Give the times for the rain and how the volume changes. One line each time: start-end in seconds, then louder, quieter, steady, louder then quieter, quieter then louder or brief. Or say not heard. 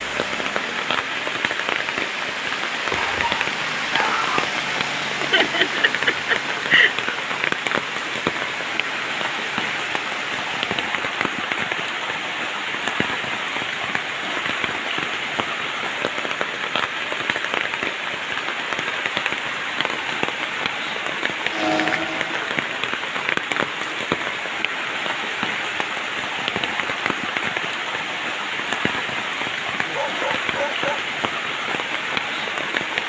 0.0-33.0 steady.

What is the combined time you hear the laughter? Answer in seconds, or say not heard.
2 s.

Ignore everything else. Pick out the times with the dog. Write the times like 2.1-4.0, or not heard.
2.9-4.3, 29.8-31.0.